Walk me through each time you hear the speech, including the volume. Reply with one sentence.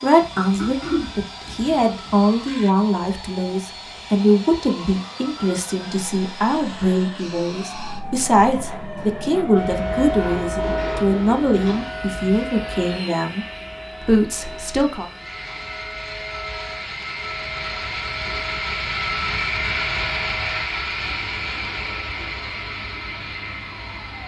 You can hear the speech from 0.0 to 15.1 s, at a steady volume.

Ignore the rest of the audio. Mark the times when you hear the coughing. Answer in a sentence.
You can hear the coughing from 0.6 to 1.1 s.